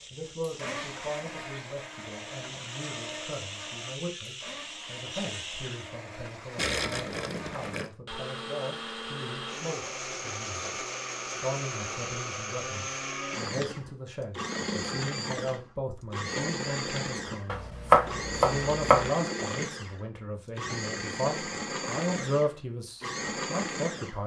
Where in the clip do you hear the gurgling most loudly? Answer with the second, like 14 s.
7 s.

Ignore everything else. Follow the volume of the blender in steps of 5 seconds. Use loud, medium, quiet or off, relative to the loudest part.
medium, medium, loud, loud, loud.